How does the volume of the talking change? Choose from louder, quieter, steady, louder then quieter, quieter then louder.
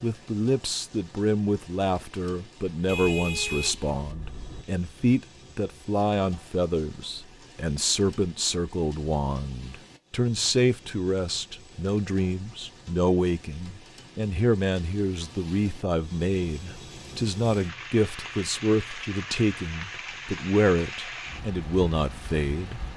steady.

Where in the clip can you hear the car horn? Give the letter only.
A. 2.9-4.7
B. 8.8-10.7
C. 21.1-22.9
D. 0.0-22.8
A.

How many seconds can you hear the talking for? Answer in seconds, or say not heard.
23 s.